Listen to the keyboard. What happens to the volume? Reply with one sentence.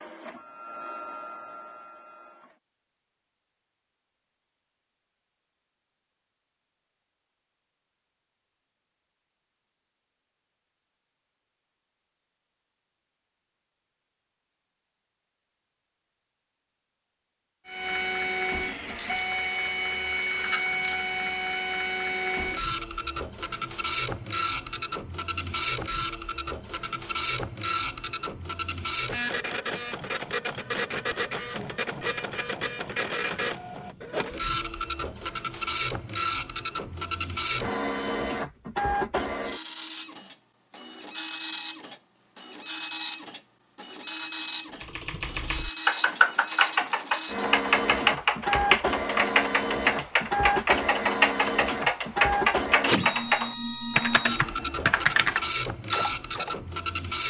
The volume of the keyboard stays about the same.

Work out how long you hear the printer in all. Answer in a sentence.
You can hear the printer for 42 seconds altogether.